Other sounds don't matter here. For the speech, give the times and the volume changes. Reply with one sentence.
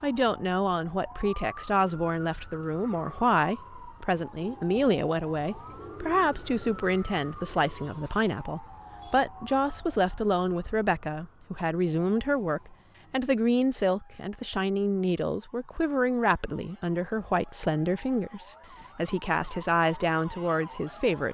You can hear the speech from 0.0 to 21.3 s, at a steady volume.